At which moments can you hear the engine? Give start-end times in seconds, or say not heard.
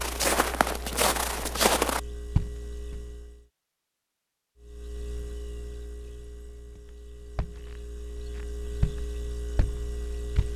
0.0-3.5, 4.5-10.5.